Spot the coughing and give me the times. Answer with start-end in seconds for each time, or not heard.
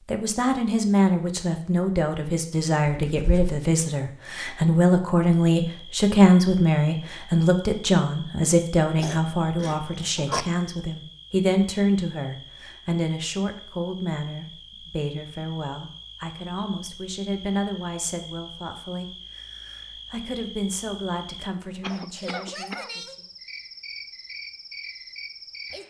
2.9-3.6, 8.9-10.4, 21.8-22.9.